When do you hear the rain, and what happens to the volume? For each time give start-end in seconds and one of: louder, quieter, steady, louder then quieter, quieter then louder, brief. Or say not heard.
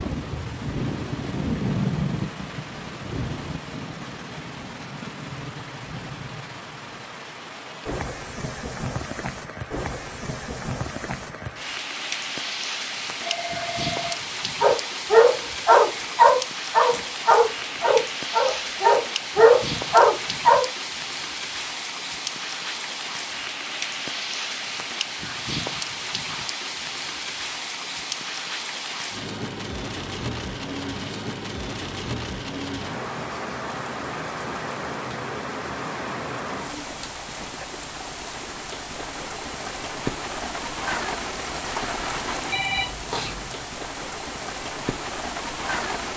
0.0-46.1 steady.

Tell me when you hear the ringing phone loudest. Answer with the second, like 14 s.
43 s.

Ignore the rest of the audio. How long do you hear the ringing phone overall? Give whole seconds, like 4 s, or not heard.
2 s.